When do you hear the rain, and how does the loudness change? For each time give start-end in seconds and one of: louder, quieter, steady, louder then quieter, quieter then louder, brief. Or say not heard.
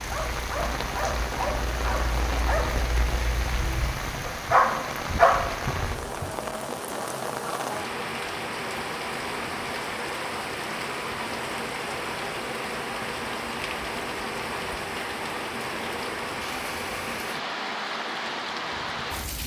0.0-19.4 steady.